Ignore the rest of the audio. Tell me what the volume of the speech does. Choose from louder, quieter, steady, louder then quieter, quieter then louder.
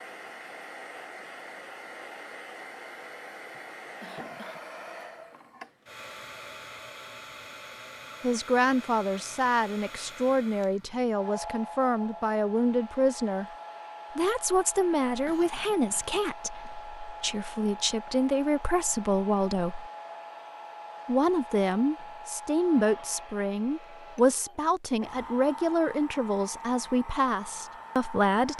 steady.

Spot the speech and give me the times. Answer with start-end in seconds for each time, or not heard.
8.2-13.4, 14.2-19.9, 21.1-28.5.